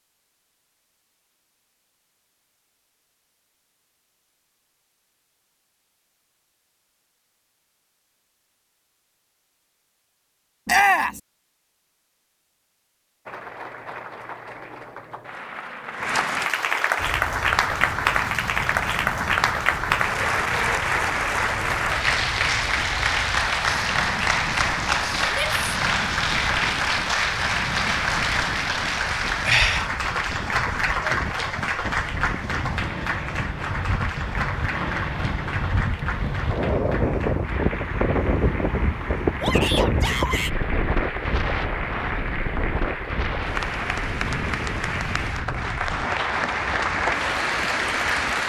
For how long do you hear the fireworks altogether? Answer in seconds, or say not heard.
not heard.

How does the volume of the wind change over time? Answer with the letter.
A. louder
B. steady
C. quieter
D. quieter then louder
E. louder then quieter
E.